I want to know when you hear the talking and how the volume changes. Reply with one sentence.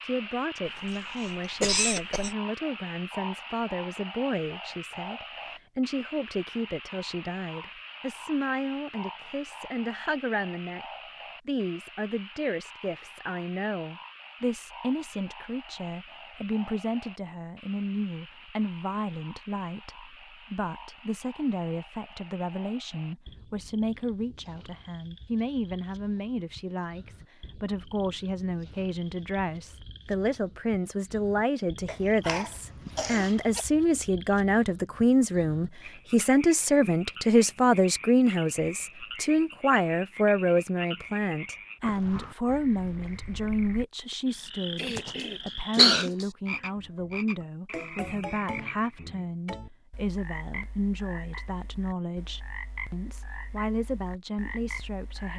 You can hear the talking from 0.0 to 10.8 s, at a steady volume; and from 11.4 to 55.3 s, getting louder then quieter.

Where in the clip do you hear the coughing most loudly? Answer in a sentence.
The loudest moment of the coughing is at 46 seconds.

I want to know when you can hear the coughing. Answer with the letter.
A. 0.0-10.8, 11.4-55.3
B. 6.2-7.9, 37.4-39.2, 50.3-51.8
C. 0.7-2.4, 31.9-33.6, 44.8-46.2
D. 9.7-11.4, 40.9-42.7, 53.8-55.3
C.